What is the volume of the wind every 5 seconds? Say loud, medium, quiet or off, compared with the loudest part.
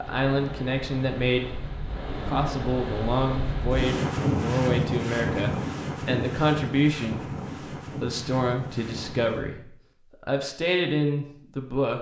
loud, loud, off.